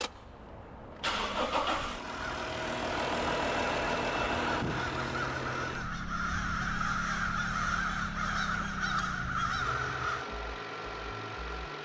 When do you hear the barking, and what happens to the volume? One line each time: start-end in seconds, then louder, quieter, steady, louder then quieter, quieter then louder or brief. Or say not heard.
not heard.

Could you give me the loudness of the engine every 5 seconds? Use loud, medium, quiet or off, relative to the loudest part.
loud, medium, medium.